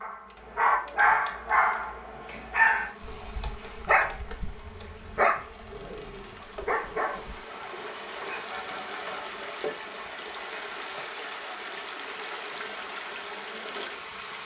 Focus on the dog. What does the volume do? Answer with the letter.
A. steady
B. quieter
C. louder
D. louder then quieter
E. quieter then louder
B.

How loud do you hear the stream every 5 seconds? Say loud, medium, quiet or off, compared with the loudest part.
quiet, loud, loud.